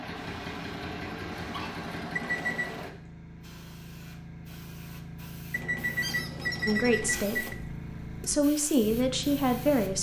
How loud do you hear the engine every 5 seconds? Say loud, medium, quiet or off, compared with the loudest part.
loud, off.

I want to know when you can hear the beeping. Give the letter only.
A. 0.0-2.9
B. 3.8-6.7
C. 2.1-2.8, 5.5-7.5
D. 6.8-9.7
C.